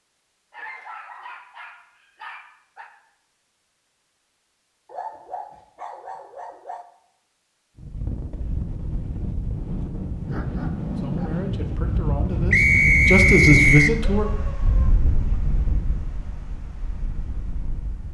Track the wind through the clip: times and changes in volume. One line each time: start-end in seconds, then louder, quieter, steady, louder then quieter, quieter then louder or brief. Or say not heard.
7.8-18.0 louder then quieter.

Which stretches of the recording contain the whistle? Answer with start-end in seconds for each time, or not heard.
12.5-13.9.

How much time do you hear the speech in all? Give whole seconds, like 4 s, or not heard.
3 s.